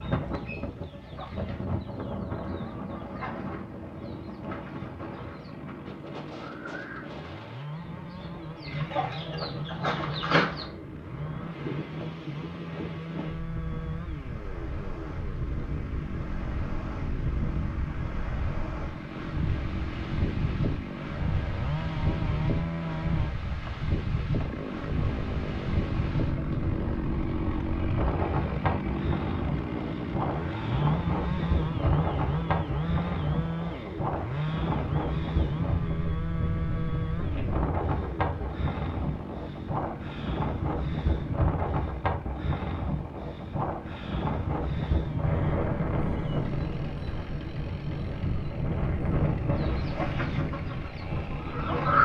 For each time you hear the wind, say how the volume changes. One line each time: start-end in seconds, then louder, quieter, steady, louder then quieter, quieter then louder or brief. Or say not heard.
0.0-52.0 louder.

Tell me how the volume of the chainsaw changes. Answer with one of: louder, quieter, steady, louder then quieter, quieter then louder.
louder then quieter.